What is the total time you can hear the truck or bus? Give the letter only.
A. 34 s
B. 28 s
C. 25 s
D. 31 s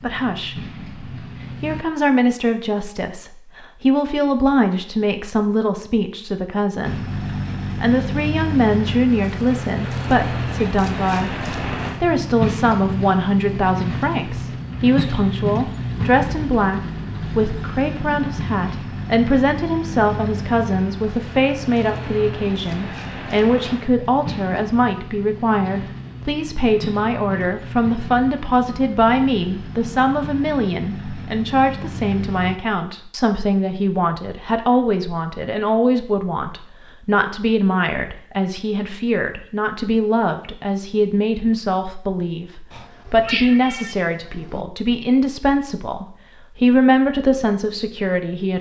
B.